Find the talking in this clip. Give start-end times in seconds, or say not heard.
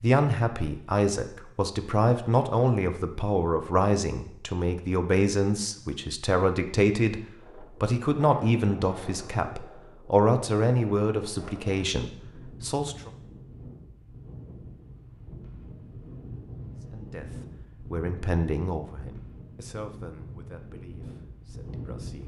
0.0-13.1, 16.9-22.2.